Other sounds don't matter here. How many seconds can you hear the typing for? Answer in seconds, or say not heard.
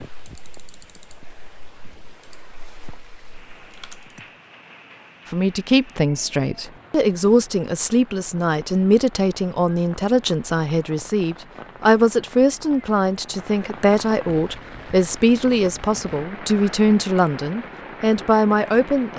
4 s.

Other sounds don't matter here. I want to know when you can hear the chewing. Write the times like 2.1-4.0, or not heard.
not heard.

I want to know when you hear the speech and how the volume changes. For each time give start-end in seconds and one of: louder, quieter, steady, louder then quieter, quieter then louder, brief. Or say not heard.
5.3-19.1 steady.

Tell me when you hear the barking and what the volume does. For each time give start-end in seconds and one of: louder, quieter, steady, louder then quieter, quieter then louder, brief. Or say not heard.
not heard.